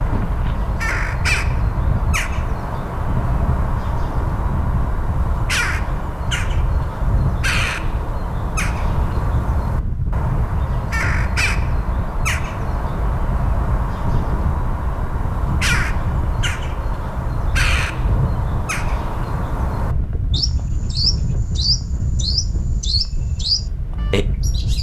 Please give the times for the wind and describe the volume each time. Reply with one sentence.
The wind can be heard from 0.0 to 24.7 s, at a steady volume.